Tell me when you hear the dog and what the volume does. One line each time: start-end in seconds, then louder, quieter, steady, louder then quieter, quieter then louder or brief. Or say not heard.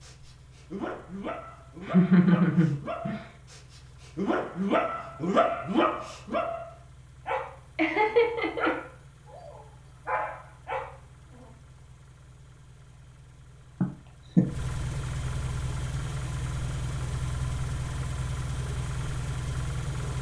0.0-11.5 louder then quieter.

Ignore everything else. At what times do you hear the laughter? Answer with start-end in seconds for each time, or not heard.
1.8-3.3, 7.8-8.7, 13.8-14.4.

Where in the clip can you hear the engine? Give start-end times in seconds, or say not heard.
0.0-20.1.